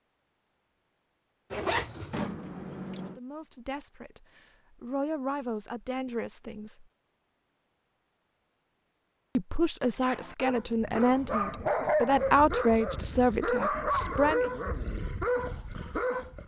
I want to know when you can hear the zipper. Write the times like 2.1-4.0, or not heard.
1.5-2.4.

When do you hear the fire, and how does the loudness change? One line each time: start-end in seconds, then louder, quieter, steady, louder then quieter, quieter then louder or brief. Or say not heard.
not heard.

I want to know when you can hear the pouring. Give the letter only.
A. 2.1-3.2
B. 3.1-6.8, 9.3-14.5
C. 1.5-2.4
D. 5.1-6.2
A.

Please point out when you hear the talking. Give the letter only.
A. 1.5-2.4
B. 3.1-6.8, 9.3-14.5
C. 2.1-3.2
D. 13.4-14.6
B.